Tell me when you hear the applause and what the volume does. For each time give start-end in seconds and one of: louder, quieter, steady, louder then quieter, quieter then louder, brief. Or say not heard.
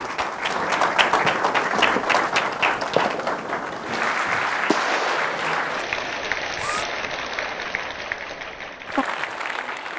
0.0-9.9 quieter.